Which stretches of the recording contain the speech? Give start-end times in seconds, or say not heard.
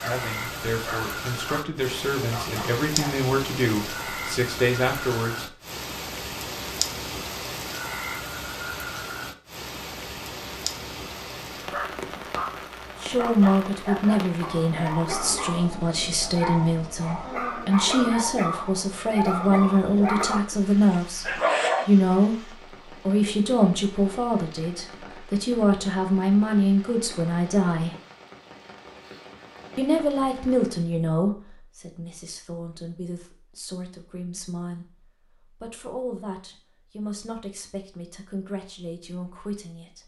0.0-5.5, 13.0-22.4, 23.1-27.9, 29.8-40.0.